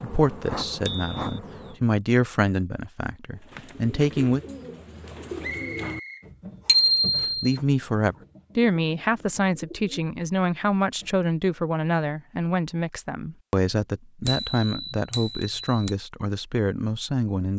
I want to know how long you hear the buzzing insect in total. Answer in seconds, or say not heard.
2 s.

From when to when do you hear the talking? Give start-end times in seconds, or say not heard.
0.0-4.4, 7.4-17.5.